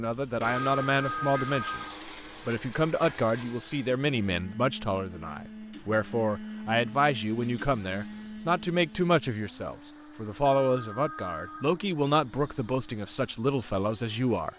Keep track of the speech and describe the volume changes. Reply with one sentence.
The loudness of the speech stays about the same.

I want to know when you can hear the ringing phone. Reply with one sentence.
You can hear the ringing phone from 0.6 to 1.9 s and from 10.4 to 11.8 s.